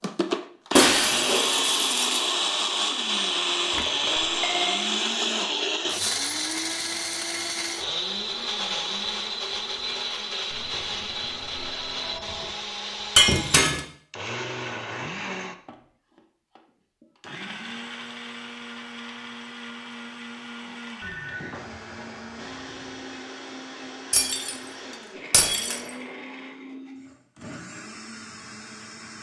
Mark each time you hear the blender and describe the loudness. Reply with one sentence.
You can hear the blender from 0.0 to 29.1 s, getting quieter.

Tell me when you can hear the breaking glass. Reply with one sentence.
You can hear the breaking glass from 0.8 to 2.4 s, from 13.2 to 13.8 s, from 24.1 to 24.6 s and from 25.3 to 25.8 s.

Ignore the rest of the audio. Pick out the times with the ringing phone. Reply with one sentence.
You can hear the ringing phone from 3.7 to 4.9 s, from 10.5 to 12.5 s and from 21.0 to 23.2 s.